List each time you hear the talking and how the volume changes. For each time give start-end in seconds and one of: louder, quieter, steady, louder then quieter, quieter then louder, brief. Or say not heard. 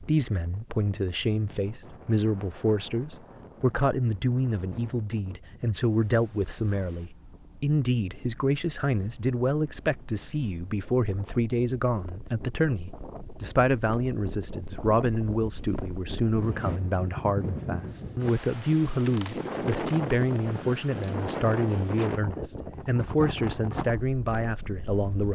0.0-25.3 steady.